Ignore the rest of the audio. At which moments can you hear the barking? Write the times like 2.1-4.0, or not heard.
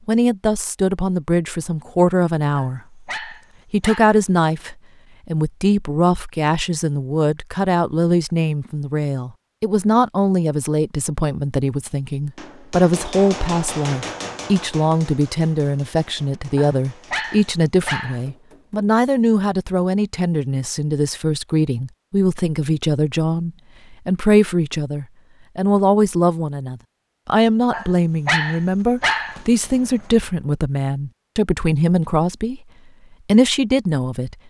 2.5-4.2, 16.6-18.2, 27.7-29.9.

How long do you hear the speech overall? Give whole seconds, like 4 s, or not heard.
33 s.